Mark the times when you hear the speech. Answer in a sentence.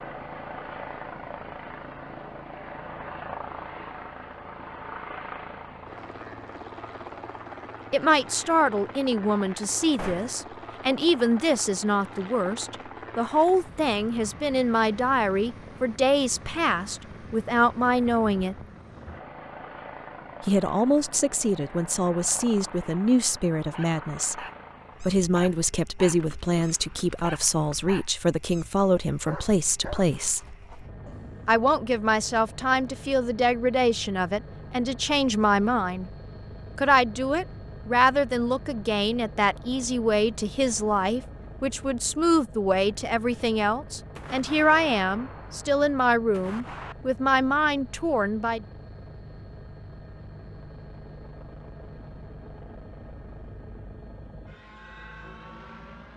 You can hear the speech from 7.9 to 18.6 s, from 20.4 to 30.6 s, from 31.4 to 36.1 s and from 36.8 to 48.6 s.